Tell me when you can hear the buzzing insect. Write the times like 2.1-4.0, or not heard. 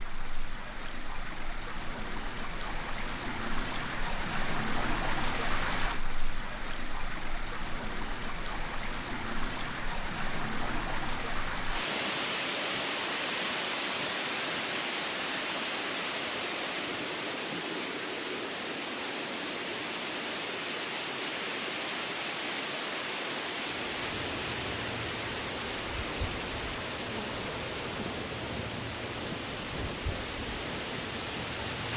23.6-31.9.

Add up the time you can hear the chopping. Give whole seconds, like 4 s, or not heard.
not heard.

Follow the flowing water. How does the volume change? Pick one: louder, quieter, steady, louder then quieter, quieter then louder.
steady.